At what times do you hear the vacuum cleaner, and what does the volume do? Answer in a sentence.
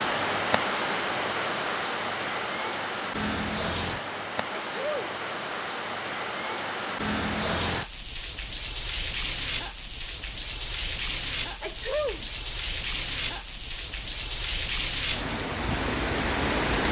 You can't hear the vacuum cleaner here.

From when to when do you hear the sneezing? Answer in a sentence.
You can hear the sneezing from 4.5 to 5.0 s and from 11.6 to 12.2 s.